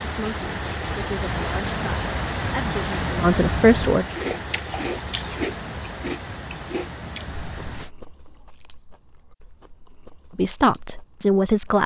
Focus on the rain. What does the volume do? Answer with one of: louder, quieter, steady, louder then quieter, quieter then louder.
quieter.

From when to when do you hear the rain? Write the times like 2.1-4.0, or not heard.
0.0-7.9.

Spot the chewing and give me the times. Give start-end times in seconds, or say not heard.
4.0-11.8.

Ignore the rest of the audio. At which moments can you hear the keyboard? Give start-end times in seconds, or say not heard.
not heard.